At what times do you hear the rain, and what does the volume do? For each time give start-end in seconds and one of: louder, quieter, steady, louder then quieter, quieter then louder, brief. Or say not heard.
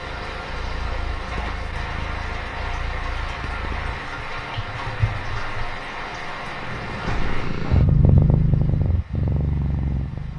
0.0-10.3 quieter.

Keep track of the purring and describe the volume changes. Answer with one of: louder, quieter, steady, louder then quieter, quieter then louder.
louder.